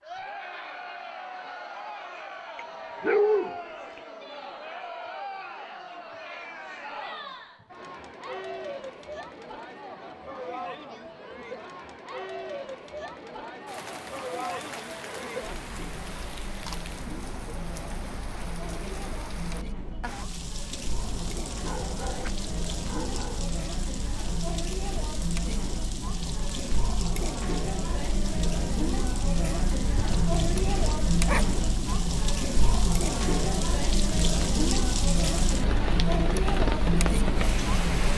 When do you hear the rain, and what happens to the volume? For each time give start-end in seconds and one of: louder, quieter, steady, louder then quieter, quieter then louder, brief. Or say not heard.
13.7-38.1 louder.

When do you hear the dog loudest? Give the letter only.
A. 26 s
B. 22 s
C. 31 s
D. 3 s
D.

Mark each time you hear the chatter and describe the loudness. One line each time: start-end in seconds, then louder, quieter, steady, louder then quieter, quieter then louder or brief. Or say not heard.
0.0-38.1 louder.